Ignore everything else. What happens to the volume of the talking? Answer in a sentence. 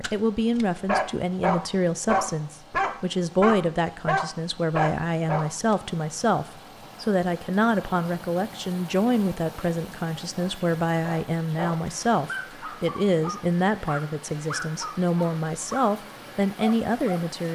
The volume of the talking stays about the same.